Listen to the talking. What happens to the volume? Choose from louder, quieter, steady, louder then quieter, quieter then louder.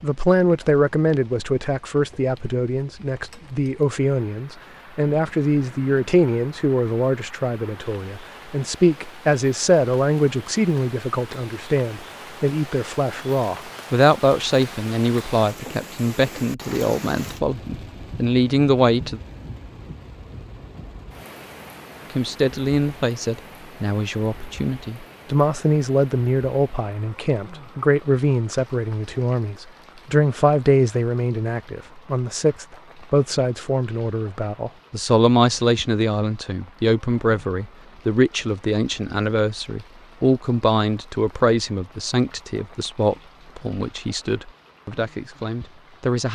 steady.